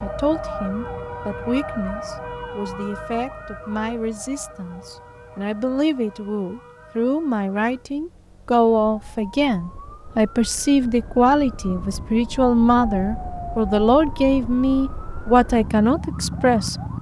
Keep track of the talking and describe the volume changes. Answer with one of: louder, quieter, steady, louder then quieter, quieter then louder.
louder.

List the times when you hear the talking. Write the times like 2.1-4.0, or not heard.
0.0-16.8.